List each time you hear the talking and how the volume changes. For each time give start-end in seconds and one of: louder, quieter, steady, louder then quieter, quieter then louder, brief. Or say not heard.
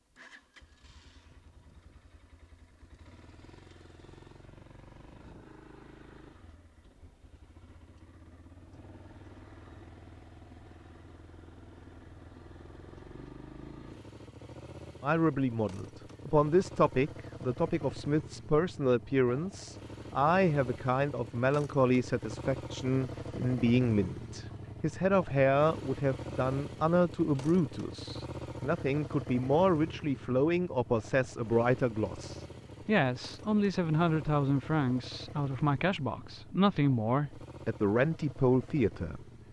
15.0-39.2 steady.